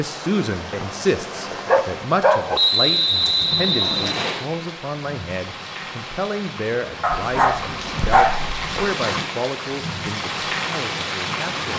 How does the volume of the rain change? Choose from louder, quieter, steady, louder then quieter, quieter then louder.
louder.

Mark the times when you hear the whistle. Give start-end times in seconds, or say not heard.
2.5-4.5.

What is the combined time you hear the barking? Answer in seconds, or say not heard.
4 s.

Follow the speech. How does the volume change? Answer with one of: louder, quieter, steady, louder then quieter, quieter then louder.
quieter.